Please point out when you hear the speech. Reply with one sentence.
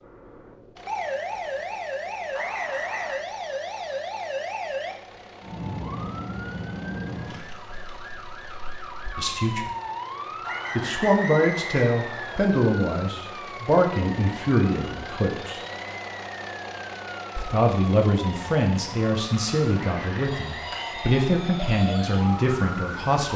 You can hear the speech from 9.2 to 9.7 s, from 10.8 to 15.6 s and from 17.4 to 23.3 s.